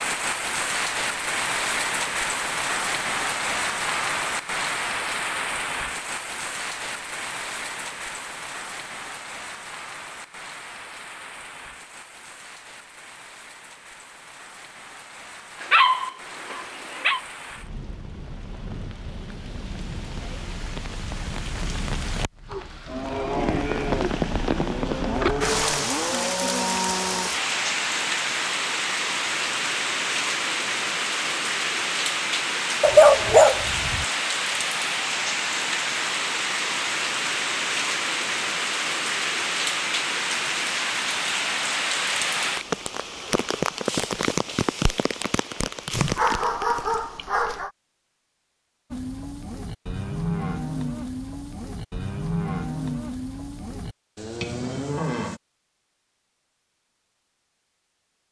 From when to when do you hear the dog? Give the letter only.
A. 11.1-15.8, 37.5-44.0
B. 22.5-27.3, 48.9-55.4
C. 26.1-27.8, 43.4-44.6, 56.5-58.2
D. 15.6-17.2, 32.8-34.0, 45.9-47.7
D.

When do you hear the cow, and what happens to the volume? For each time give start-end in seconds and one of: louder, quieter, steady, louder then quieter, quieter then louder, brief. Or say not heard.
22.5-27.3 steady
48.9-55.4 steady.